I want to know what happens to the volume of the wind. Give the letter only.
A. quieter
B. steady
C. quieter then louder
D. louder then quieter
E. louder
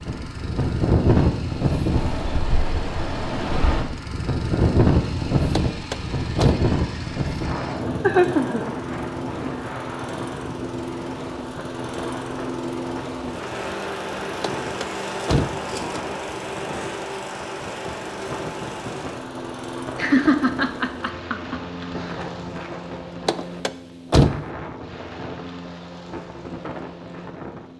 A.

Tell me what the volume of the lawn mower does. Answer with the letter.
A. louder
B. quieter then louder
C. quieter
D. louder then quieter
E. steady
D.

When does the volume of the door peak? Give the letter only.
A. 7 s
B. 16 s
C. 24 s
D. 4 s
C.